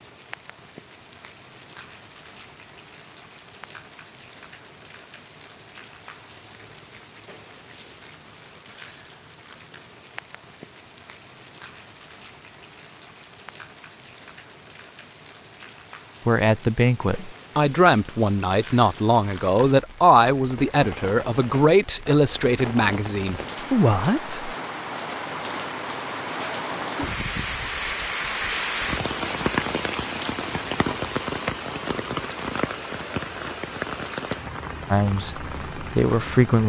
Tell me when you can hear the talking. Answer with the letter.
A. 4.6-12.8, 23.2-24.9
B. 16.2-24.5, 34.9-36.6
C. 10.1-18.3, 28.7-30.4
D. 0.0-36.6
B.